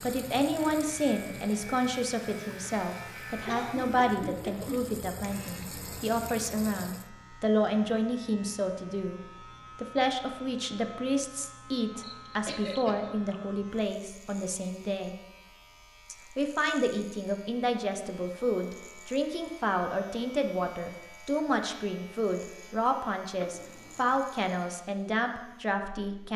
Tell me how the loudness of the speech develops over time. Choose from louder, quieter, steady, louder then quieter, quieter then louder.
steady.